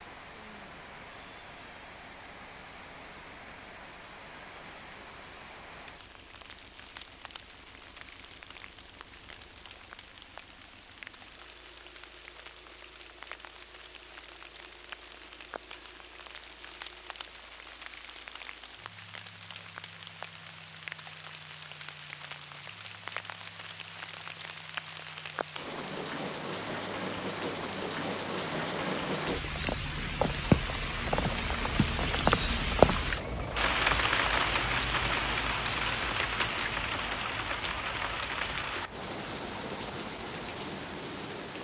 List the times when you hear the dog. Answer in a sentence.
The dog can't be heard in this clip.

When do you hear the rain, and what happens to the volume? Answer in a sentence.
The rain can be heard from 0.0 to 41.5 s, getting louder.